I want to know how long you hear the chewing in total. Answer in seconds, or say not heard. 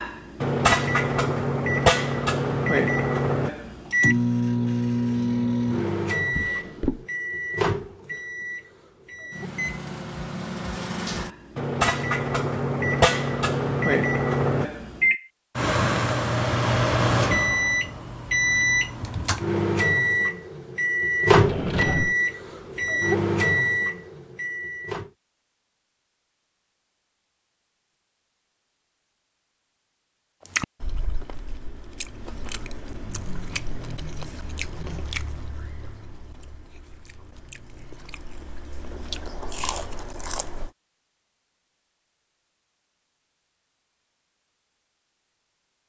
10 s.